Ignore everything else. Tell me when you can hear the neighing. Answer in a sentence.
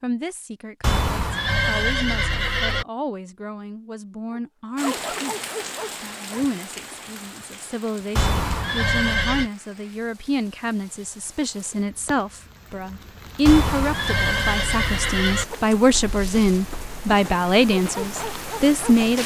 The neighing can be heard from 0.8 to 2.9 s, from 8.2 to 9.5 s and from 13.4 to 15.4 s.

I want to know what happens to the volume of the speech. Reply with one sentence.
The loudness of the speech goes up.